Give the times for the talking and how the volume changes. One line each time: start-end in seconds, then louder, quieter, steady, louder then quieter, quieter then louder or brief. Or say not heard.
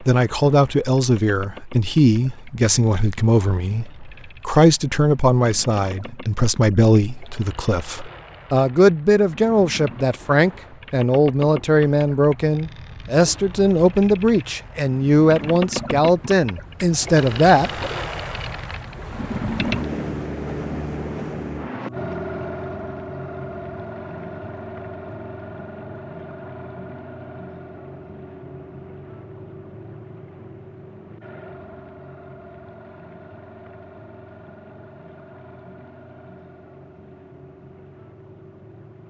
0.0-17.7 steady.